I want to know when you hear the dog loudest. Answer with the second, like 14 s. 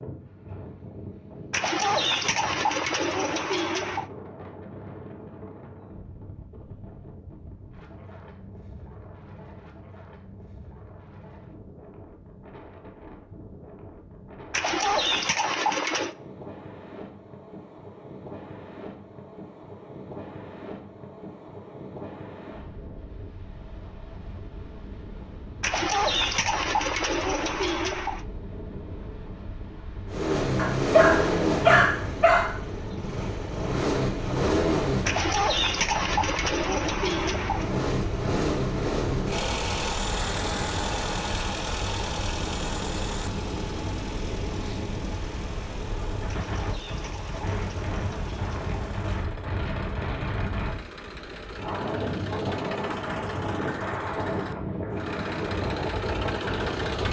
32 s.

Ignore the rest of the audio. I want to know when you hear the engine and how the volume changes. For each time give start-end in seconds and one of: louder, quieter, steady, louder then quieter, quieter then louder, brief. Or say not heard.
30.1-57.0 quieter then louder.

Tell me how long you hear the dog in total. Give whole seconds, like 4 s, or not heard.
2 s.